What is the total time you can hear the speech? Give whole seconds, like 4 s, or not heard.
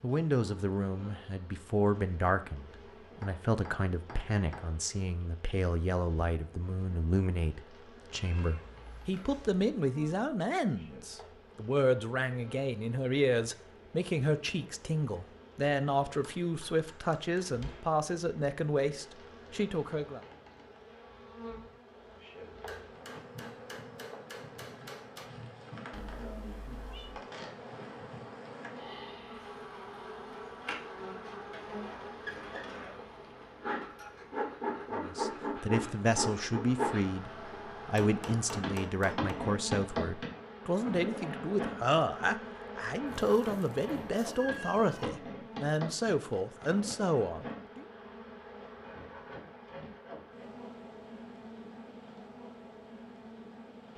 33 s.